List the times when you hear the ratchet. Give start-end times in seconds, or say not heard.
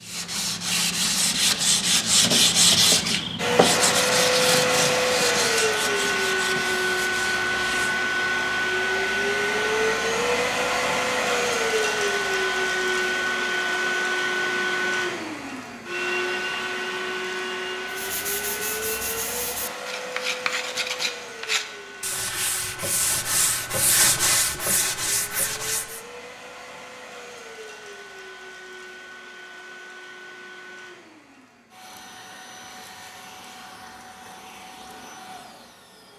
not heard.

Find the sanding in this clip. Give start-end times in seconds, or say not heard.
0.0-8.0, 17.9-26.1.